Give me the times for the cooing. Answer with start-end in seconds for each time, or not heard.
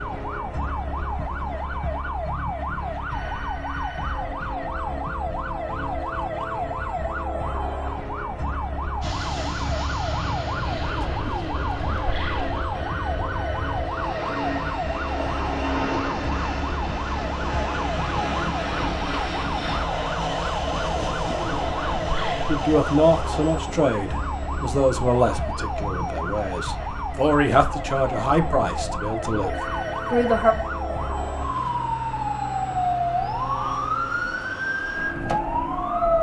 10.7-12.6, 20.8-22.6.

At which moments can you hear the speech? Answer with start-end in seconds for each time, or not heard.
22.4-30.6.